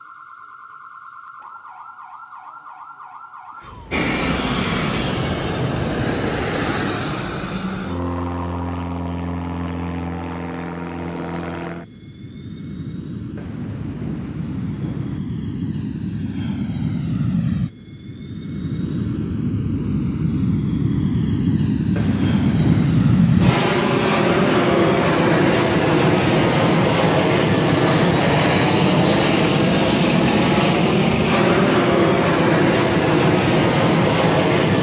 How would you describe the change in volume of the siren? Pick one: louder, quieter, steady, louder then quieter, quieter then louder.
steady.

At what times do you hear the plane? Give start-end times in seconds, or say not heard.
3.9-34.7.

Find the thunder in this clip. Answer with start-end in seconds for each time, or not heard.
13.3-15.2, 21.9-23.8.